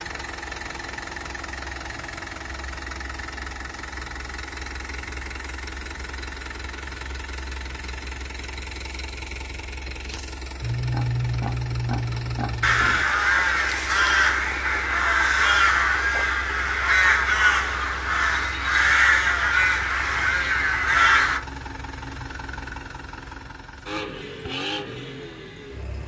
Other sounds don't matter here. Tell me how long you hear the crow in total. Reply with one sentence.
The crow can be heard for 9 seconds in total.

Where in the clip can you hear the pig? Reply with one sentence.
You can hear the pig from 10.6 to 13.1 s.